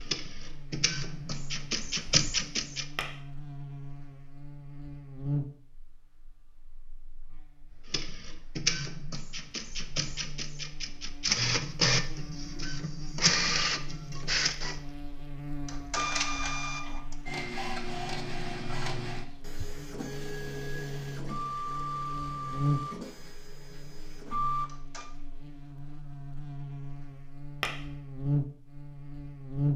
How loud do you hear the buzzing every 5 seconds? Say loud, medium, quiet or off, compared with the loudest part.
medium, medium, medium, medium, loud, loud.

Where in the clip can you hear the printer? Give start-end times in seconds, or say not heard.
0.0-2.9, 7.7-25.1.